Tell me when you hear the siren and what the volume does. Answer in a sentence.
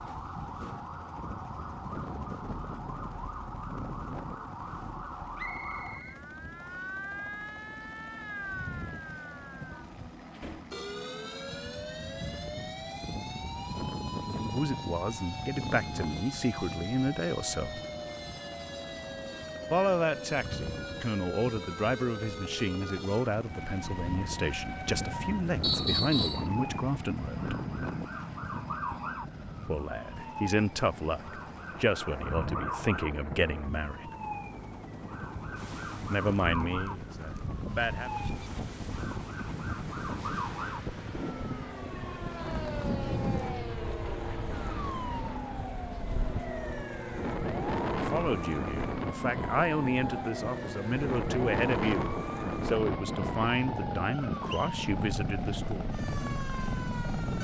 The siren can be heard from 0.0 to 57.4 s, at a steady volume.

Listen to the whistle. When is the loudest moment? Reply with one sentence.
The volume of the whistle peaks at 26 seconds.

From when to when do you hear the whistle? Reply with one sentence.
You can hear the whistle from 5.3 to 6.8 s, from 25.6 to 26.4 s and from 54.1 to 54.8 s.